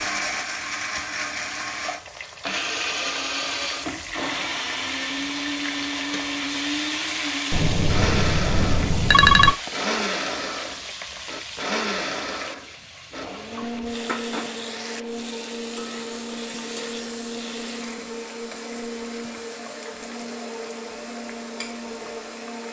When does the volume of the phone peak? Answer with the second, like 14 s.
9 s.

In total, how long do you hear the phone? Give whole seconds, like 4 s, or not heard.
2 s.